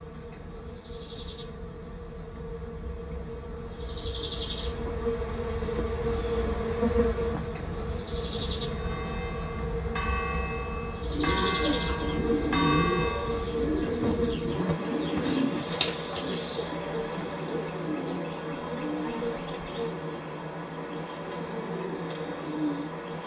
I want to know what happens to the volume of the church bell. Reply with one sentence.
The loudness of the church bell goes up.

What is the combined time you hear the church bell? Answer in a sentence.
The church bell can be heard for 5 seconds in total.